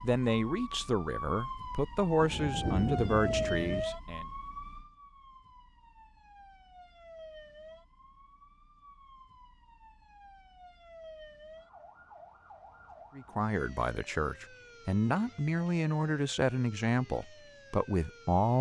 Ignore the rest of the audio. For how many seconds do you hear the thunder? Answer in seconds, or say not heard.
2 s.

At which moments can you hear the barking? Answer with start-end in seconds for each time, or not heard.
not heard.